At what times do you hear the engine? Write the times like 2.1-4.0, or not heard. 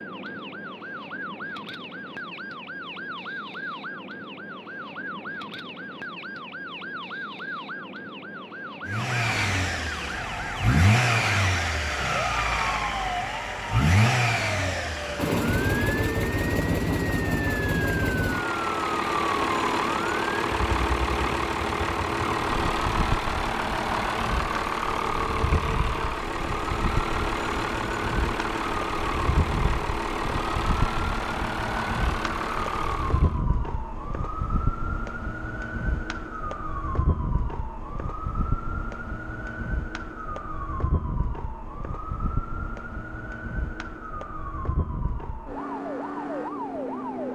8.8-33.4.